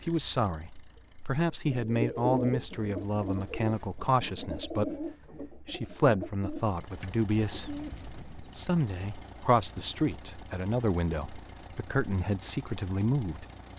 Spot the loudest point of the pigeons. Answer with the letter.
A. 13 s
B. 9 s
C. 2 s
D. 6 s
C.